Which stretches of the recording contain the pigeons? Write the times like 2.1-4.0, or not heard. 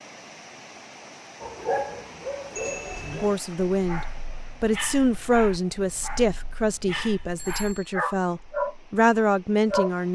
not heard.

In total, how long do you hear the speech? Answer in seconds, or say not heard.
7 s.